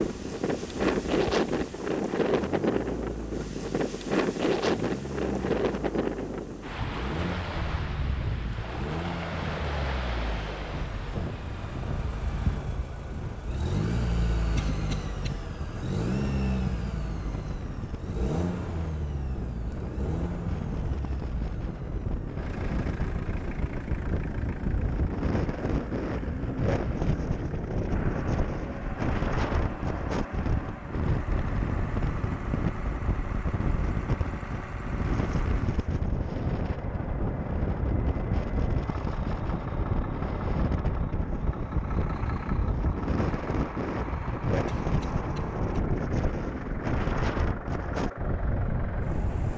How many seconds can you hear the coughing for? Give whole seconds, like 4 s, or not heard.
2 s.